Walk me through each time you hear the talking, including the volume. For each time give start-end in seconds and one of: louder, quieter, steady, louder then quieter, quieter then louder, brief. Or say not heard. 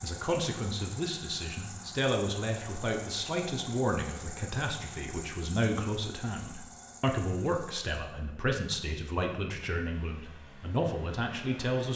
0.0-11.9 steady.